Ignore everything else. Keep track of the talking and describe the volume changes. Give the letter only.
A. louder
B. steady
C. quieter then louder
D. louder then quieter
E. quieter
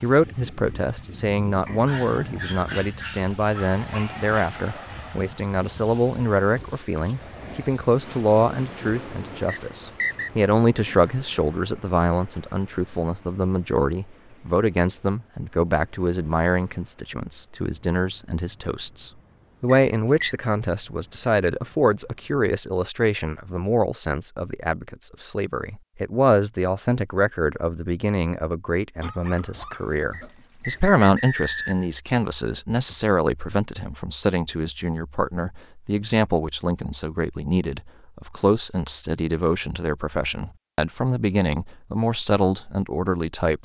B.